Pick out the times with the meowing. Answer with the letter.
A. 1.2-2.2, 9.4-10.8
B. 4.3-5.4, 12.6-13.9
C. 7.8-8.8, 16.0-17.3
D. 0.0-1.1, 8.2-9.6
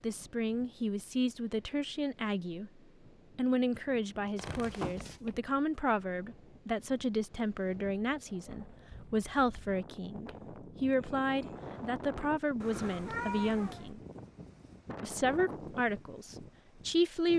B.